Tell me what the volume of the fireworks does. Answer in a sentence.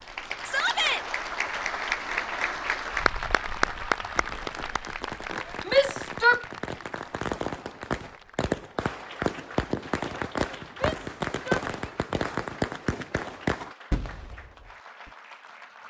The volume of the fireworks goes up.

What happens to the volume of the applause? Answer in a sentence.
The loudness of the applause goes down.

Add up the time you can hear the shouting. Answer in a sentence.
You can hear the shouting for 2 seconds altogether.